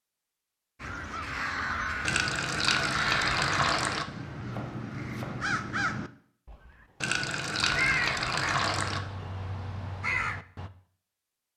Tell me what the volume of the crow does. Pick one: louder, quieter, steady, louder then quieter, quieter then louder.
steady.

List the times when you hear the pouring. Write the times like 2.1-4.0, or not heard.
2.0-4.0, 7.0-9.0.